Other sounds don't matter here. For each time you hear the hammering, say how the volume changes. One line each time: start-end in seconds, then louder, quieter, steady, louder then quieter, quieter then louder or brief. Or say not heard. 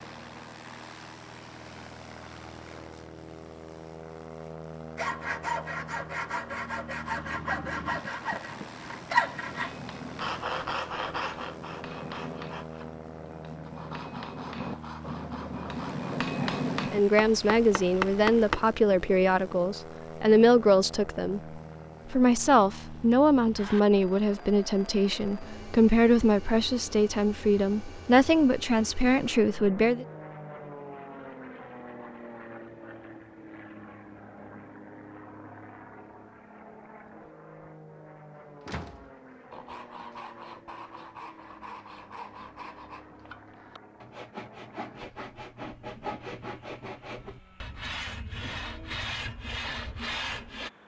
7.2-18.6 louder.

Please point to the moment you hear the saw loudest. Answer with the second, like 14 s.
9 s.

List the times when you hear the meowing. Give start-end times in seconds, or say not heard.
not heard.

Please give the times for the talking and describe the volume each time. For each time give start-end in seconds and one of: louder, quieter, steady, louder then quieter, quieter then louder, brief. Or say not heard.
16.9-30.1 steady.